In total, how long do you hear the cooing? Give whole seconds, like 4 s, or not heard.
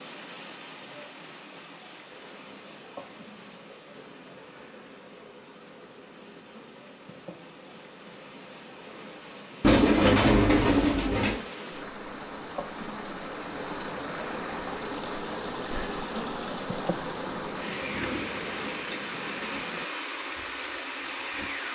2 s.